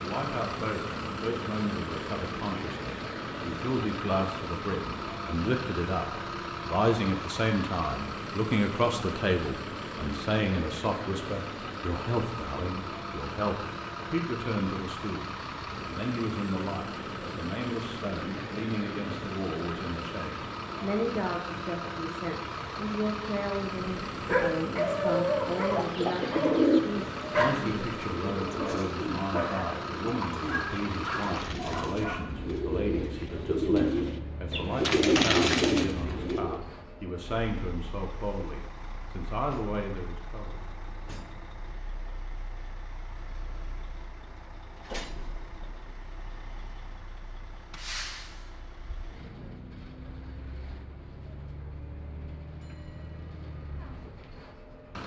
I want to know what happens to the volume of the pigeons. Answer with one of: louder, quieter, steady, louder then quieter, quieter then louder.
quieter then louder.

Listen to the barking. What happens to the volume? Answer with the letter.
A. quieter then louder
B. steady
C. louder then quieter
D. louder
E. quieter
E.